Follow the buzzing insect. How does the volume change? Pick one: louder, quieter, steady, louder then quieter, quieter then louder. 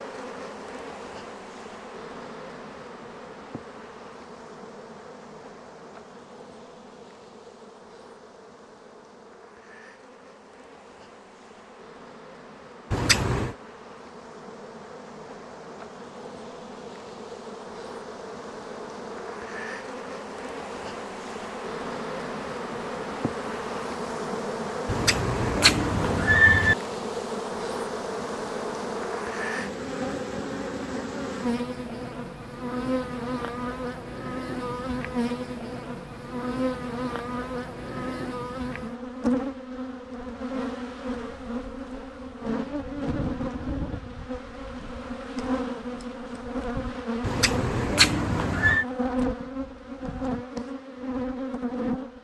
louder.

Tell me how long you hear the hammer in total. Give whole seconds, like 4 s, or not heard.
not heard.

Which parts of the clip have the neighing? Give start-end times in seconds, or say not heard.
12.9-13.6, 24.9-26.8, 47.2-48.9.